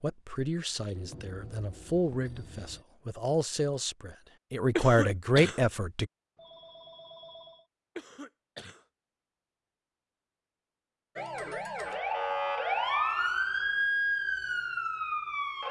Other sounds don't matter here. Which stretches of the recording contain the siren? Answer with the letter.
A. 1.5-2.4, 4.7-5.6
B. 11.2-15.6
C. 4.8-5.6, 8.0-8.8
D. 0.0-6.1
B.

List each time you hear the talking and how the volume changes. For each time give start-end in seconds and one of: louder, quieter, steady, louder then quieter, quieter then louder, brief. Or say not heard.
0.0-6.1 louder.